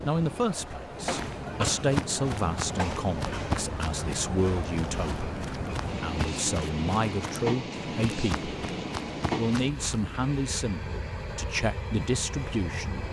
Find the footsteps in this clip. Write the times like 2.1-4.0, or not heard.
1.0-10.2.